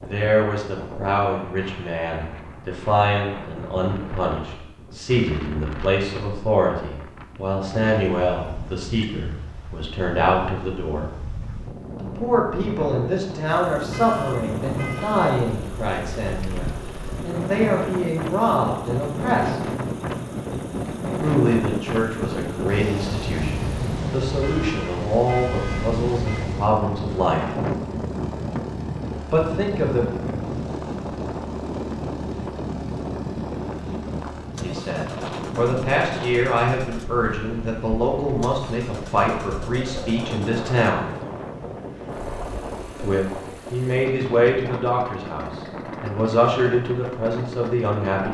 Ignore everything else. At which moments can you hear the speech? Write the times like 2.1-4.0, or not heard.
0.0-11.1, 12.0-19.6, 21.2-27.6, 29.3-30.1, 34.6-41.0, 43.0-48.2.